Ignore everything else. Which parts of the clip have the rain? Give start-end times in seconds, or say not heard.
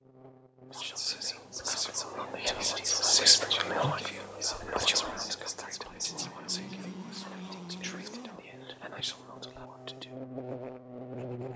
not heard.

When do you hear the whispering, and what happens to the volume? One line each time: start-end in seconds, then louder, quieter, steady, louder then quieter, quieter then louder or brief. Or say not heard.
0.7-10.1 louder then quieter.